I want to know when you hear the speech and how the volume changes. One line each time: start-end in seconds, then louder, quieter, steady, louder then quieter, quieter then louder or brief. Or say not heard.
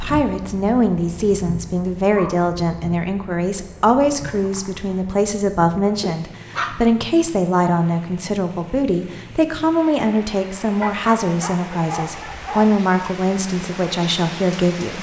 0.0-14.9 steady.